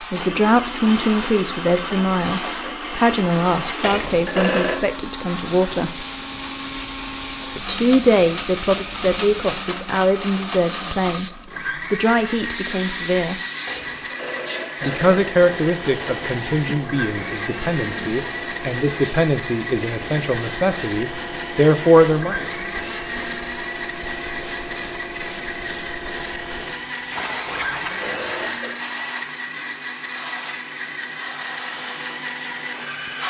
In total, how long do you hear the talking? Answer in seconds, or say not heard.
19 s.